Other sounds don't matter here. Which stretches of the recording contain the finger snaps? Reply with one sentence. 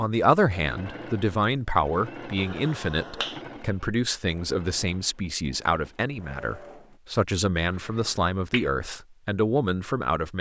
You can hear the finger snaps from 2.4 to 3.4 s and from 7.6 to 8.7 s.